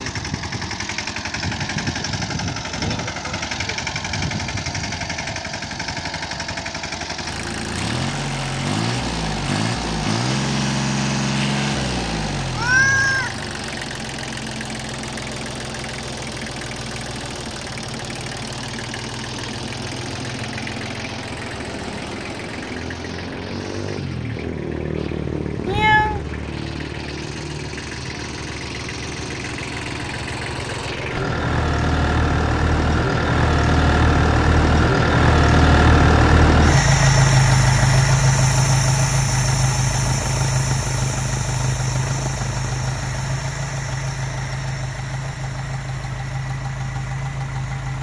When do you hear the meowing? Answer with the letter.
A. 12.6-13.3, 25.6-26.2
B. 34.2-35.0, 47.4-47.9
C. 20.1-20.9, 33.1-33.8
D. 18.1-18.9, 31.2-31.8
A.